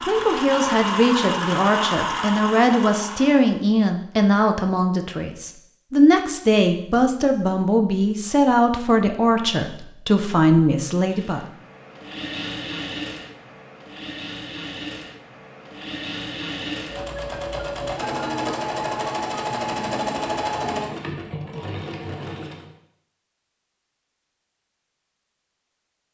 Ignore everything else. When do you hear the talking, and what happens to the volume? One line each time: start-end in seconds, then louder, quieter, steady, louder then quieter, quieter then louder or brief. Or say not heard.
0.1-11.4 steady.